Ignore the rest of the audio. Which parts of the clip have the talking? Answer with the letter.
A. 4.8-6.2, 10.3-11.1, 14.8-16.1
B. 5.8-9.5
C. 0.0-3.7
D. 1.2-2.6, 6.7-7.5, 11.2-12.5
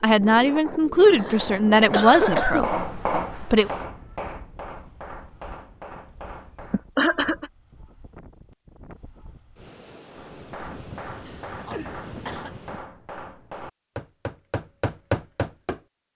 C.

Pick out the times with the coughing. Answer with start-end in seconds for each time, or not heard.
1.2-2.6, 6.7-7.5, 11.2-12.5.